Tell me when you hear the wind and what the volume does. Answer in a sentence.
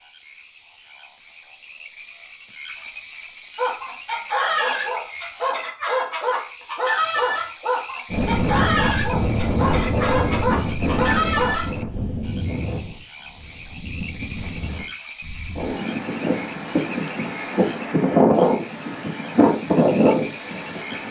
You can hear the wind from 8.1 to 21.0 s, getting quieter then louder.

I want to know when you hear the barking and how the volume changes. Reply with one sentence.
The barking can be heard from 3.5 to 11.7 s, at a steady volume.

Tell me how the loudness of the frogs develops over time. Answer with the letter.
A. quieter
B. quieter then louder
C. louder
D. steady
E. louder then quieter
D.